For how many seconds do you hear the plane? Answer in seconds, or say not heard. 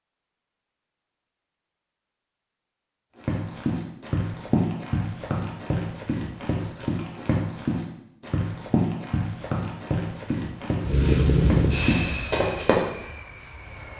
3 s.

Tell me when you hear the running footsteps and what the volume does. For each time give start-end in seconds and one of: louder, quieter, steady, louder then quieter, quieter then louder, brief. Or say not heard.
3.1-12.8 steady.